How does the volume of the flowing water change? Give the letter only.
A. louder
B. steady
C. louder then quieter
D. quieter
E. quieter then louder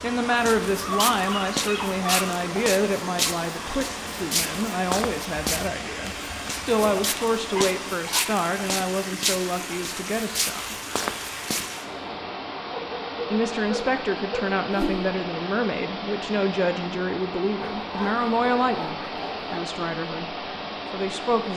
B.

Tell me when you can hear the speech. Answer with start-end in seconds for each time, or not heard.
0.0-10.8, 13.3-21.5.